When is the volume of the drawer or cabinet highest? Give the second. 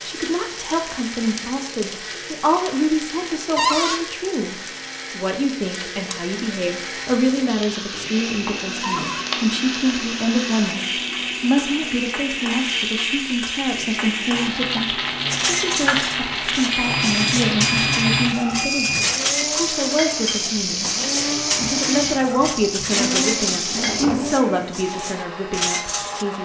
4 s.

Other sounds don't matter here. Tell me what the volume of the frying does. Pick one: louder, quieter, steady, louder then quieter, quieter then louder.
louder.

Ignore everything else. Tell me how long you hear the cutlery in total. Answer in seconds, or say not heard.
11 s.